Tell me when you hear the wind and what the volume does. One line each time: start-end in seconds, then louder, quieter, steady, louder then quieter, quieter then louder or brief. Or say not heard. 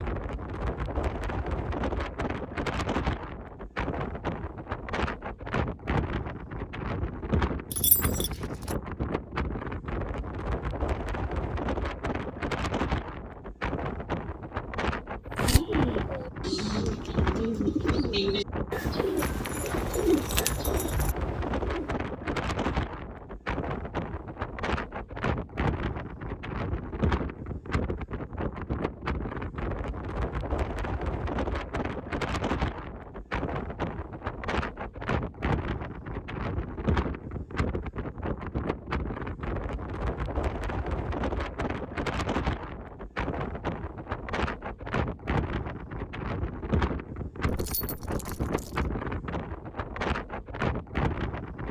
0.0-51.6 steady.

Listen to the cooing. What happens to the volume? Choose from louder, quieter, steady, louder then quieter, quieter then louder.
quieter.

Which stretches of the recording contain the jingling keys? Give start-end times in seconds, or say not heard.
7.7-8.8, 19.1-21.1, 47.5-48.9.